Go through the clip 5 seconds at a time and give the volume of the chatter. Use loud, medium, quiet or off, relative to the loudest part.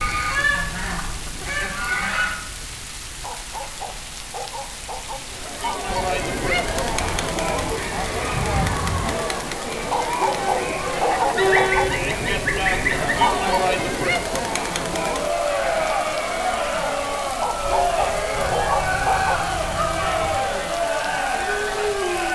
off, loud, loud, loud, loud.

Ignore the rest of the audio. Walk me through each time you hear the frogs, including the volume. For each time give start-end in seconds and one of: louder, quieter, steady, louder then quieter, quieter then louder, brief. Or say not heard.
not heard.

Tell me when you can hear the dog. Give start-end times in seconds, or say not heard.
3.2-5.2, 9.9-11.8, 17.4-19.4.